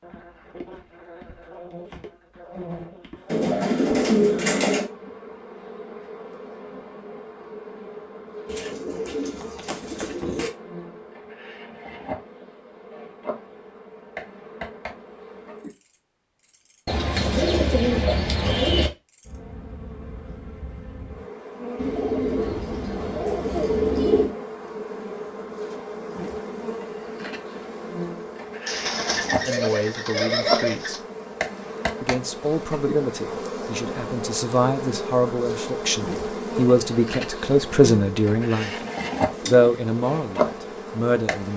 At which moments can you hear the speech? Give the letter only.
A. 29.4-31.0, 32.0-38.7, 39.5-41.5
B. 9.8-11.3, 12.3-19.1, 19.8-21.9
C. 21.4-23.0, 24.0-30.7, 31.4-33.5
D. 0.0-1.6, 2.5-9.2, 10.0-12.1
A.